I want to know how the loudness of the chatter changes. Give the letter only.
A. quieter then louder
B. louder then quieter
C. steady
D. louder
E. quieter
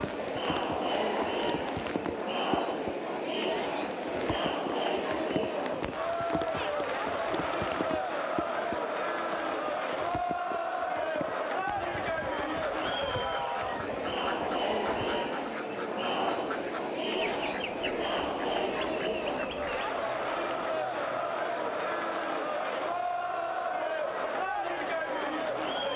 C.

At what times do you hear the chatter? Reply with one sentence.
The chatter can be heard from 0.0 to 25.9 s.